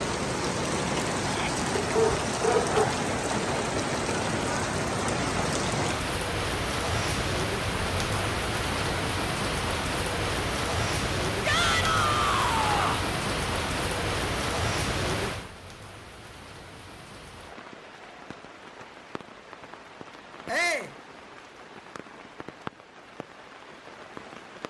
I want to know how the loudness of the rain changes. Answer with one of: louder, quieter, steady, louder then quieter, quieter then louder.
quieter.